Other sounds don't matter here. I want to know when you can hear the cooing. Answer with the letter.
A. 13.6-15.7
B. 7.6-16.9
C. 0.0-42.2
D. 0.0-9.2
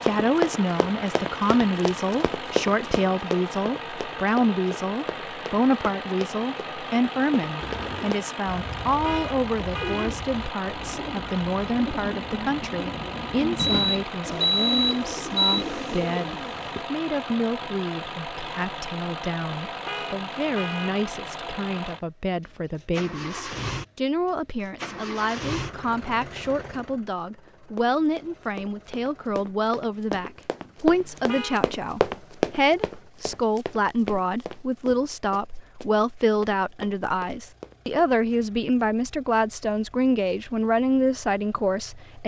B.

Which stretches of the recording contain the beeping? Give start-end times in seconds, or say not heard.
13.6-15.7.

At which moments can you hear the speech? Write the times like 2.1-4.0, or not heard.
0.0-42.2.